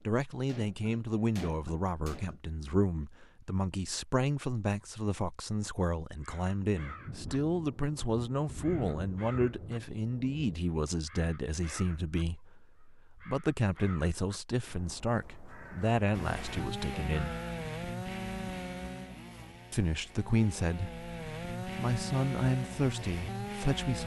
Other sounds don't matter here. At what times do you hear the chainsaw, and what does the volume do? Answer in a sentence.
The chainsaw can be heard from 16.1 to 24.0 s, getting quieter then louder.